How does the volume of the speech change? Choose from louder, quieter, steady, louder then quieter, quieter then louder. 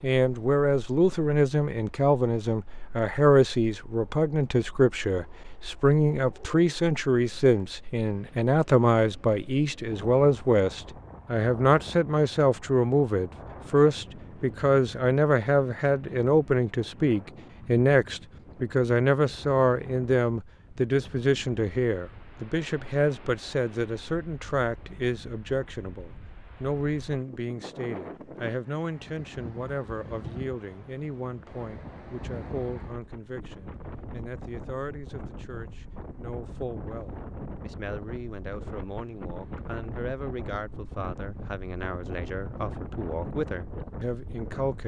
quieter.